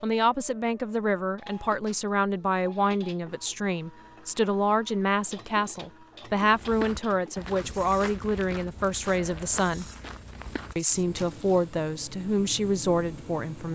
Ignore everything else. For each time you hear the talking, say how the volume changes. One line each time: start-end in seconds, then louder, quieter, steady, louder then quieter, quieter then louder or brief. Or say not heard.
0.0-9.8 steady
10.8-13.6 brief.